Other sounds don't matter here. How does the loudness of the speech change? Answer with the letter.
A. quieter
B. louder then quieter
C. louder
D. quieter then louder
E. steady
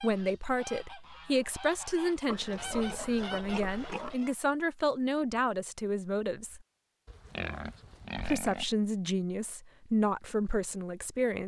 E.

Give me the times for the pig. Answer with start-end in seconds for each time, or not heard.
2.2-4.2, 7.0-8.8.